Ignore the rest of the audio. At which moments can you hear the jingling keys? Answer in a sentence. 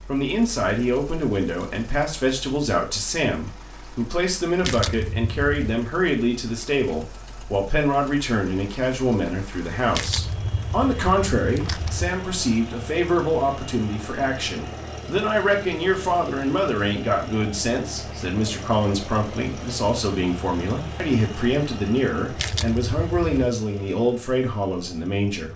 You can hear the jingling keys from 4.6 to 5.8 s, from 9.9 to 12.2 s and from 22.4 to 23.4 s.